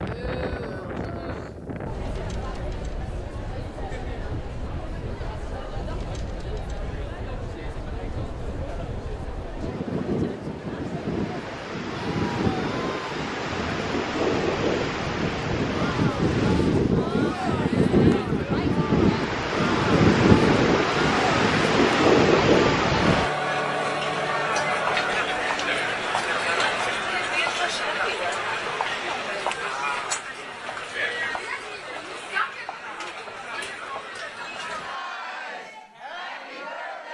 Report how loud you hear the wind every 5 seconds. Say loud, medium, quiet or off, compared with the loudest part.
quiet, quiet, medium, loud, loud, off, off, off.